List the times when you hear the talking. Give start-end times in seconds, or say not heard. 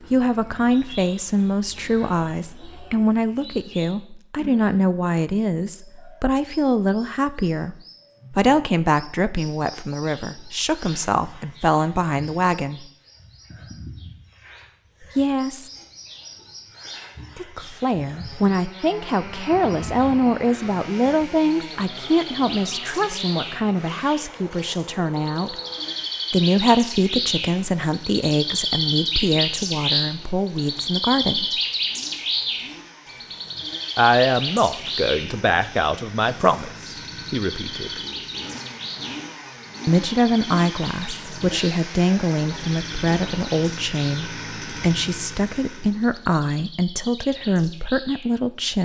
0.1-12.8, 15.2-15.7, 17.4-25.6, 26.3-31.4, 34.0-38.0, 39.9-48.7.